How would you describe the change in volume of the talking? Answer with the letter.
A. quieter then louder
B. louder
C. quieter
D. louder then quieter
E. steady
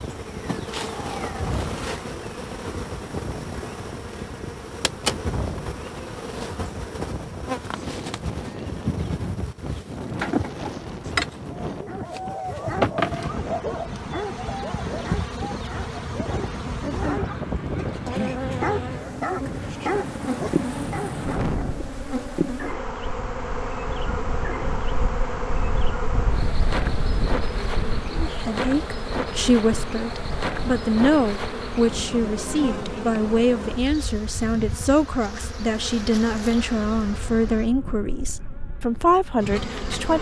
E.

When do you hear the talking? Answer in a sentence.
You can hear the talking from 28.1 to 40.1 s.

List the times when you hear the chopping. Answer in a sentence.
The chopping can't be heard in this clip.